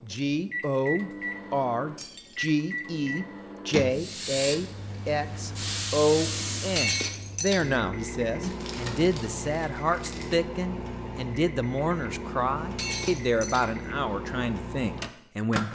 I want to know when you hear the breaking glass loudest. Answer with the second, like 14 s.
7 s.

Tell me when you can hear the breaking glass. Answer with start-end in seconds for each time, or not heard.
1.9-2.4, 6.8-7.7, 12.8-13.7.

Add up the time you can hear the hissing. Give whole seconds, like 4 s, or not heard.
3 s.